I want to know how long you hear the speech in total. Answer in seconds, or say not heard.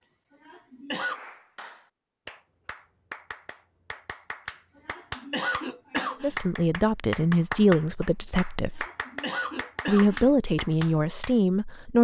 5 s.